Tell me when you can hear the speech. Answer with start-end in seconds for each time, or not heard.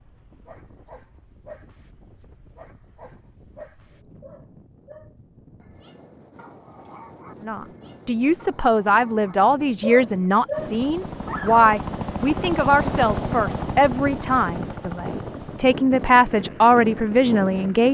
7.4-17.8.